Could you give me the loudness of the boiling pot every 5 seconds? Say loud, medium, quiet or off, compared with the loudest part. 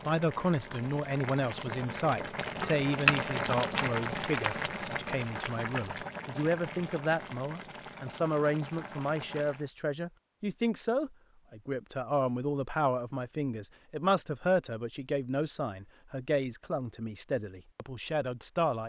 loud, medium, off, off.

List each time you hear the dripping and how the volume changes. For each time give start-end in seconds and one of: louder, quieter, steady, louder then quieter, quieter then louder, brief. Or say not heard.
not heard.